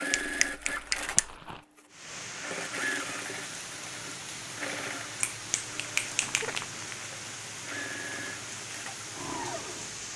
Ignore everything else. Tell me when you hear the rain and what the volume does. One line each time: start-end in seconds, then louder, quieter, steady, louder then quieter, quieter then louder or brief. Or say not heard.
1.9-10.1 steady.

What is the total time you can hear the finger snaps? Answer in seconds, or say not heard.
3 s.